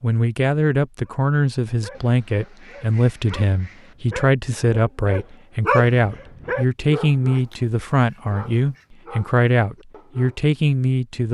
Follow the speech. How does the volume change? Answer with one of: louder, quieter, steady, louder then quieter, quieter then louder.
steady.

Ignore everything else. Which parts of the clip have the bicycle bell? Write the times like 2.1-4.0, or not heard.
not heard.